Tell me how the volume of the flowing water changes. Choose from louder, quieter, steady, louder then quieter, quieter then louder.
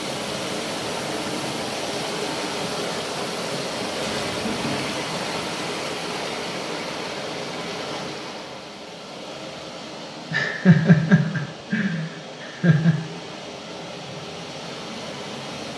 quieter.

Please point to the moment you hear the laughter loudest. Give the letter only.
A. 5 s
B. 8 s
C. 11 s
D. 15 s
C.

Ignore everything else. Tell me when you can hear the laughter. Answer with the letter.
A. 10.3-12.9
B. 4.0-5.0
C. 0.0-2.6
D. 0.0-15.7
A.